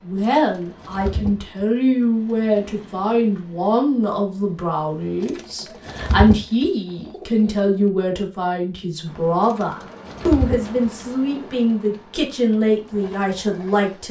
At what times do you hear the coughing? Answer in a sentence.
The coughing can't be heard in this clip.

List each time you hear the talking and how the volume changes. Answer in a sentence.
You can hear the talking from 0.0 to 14.0 s, at a steady volume.